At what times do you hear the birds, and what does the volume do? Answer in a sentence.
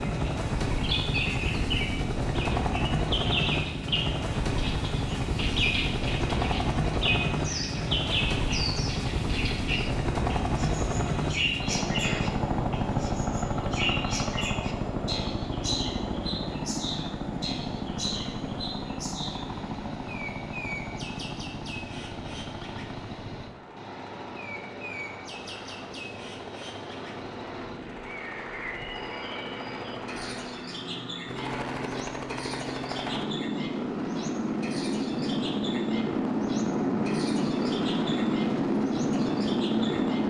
The birds can be heard from 0.0 to 40.2 s, getting quieter.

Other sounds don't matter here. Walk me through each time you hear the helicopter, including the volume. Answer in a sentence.
You can hear the helicopter from 0.0 to 40.2 s, getting quieter then louder.